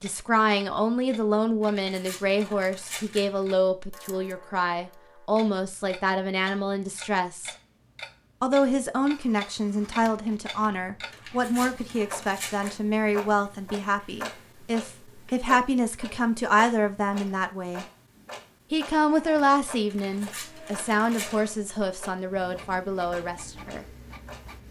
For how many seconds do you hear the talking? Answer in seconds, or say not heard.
22 s.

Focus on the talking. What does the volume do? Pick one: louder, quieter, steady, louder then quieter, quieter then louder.
steady.